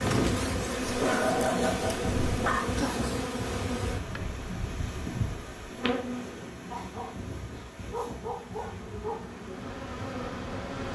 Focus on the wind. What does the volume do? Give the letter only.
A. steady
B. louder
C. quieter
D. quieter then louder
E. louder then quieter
C.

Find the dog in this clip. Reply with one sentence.
The dog can be heard from 0.8 to 2.6 s and from 6.7 to 9.2 s.